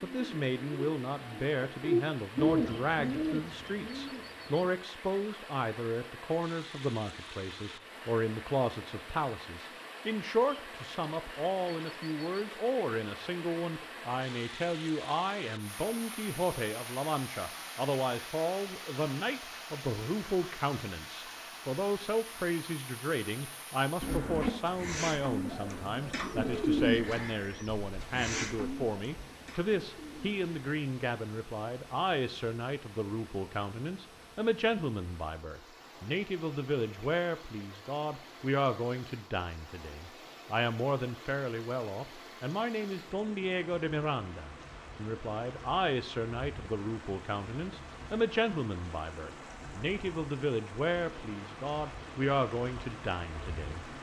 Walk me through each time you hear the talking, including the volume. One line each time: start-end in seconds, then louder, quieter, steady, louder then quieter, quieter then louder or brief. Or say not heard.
0.0-53.9 steady.